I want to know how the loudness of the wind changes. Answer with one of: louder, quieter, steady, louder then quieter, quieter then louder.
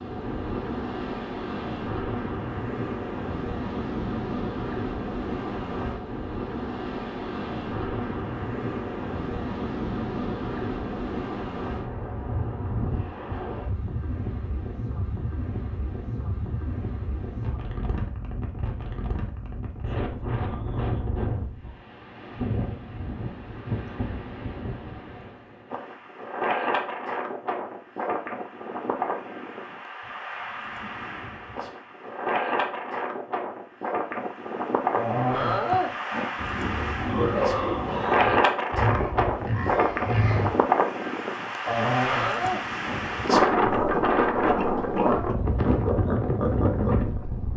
louder.